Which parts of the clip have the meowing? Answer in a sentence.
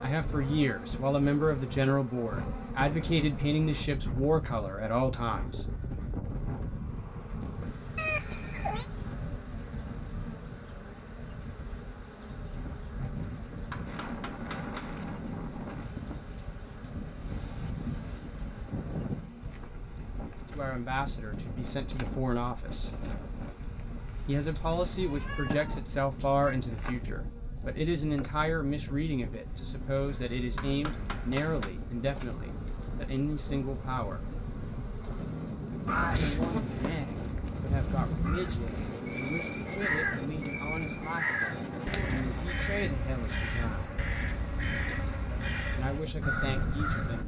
You can hear the meowing from 8.0 to 8.8 s, from 24.6 to 26.6 s and from 35.9 to 37.1 s.